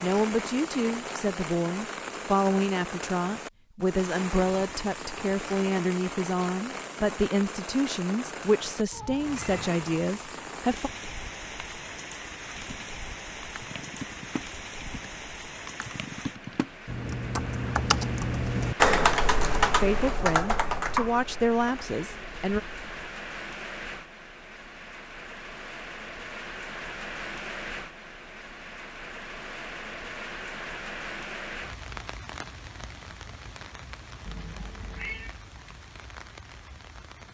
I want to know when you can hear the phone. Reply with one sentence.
You can't hear the phone here.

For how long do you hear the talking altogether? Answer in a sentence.
The talking can be heard for 14 seconds in total.